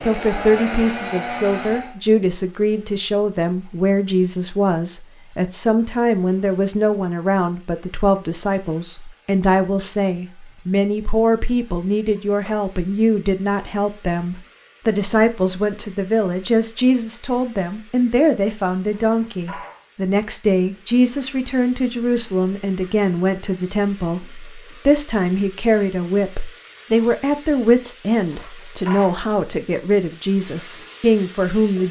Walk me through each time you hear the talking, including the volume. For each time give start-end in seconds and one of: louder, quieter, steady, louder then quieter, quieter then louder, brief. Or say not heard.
0.0-31.8 steady.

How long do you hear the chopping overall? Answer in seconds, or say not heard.
not heard.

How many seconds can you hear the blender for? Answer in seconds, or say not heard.
2 s.